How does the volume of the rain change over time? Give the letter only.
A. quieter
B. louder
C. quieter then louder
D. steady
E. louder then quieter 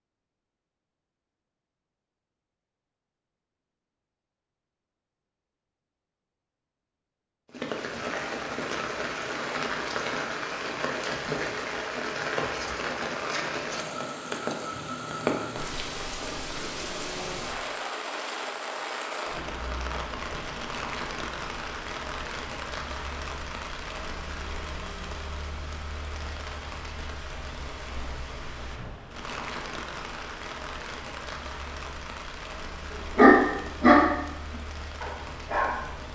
A.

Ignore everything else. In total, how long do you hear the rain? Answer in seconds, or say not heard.
29 s.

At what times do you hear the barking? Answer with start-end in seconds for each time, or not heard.
33.1-36.1.